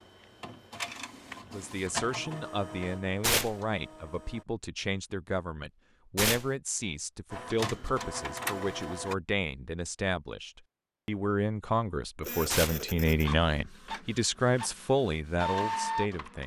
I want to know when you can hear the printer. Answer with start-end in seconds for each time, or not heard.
0.0-4.5, 7.3-9.2, 12.2-16.4.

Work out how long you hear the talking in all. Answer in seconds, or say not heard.
15 s.